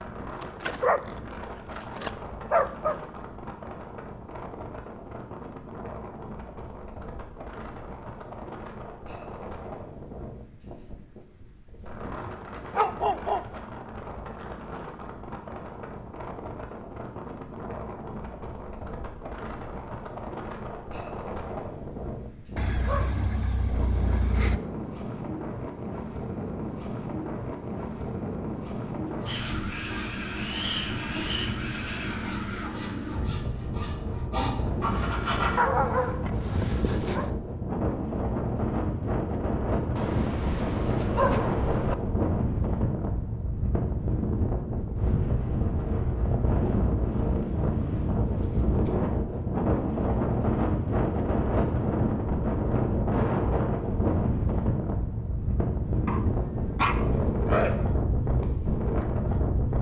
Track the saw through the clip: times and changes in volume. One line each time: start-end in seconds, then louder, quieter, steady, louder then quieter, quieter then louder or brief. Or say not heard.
29.1-35.6 louder.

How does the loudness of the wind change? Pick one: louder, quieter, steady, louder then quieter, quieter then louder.
louder.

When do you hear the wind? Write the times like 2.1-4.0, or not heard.
0.0-59.7.